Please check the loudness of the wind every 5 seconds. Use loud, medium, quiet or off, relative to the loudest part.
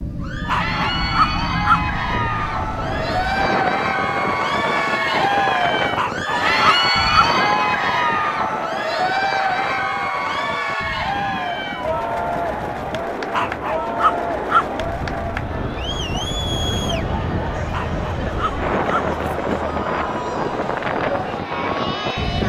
loud, loud, medium, loud, loud.